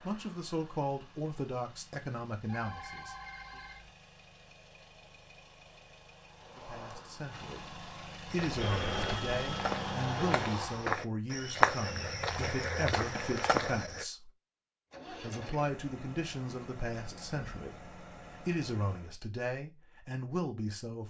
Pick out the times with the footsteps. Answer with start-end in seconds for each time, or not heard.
8.3-14.1.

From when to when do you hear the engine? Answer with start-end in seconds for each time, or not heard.
0.0-10.9, 14.9-19.1.